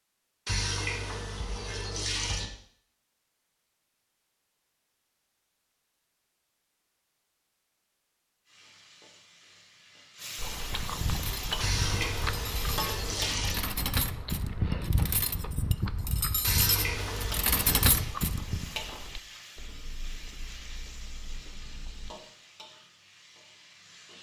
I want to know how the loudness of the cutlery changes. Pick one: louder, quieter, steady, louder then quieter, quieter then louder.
louder.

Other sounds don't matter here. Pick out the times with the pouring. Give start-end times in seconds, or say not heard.
0.5-2.5, 11.6-13.6, 16.4-18.1.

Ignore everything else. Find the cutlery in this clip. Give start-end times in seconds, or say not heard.
10.7-18.7.